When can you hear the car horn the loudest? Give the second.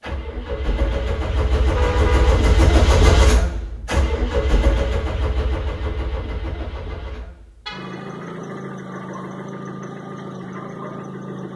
2 s.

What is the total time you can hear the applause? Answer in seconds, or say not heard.
not heard.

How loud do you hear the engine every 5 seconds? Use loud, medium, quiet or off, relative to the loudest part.
loud, medium, medium.